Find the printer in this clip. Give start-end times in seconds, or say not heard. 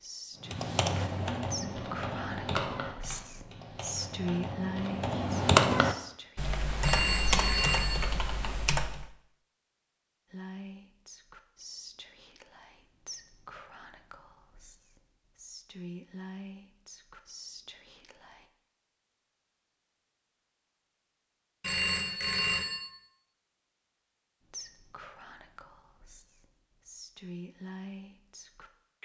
not heard.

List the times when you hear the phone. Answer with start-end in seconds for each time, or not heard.
6.8-8.1, 21.6-22.9.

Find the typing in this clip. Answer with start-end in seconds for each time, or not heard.
0.5-9.1.